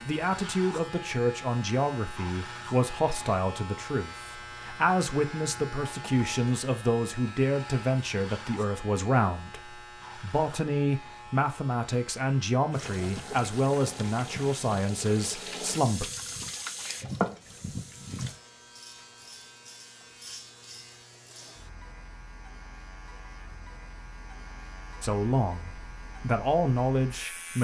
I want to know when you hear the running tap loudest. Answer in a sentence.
The loudest moment of the running tap is at 17 seconds.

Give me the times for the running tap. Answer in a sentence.
You can hear the running tap from 12.7 to 18.4 s.